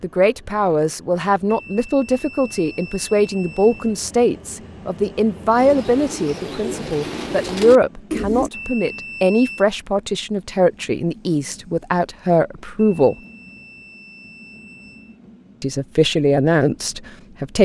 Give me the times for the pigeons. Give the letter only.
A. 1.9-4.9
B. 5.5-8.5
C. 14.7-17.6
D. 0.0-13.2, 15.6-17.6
B.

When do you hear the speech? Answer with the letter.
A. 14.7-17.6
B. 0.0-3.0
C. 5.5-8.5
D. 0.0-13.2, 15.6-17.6
D.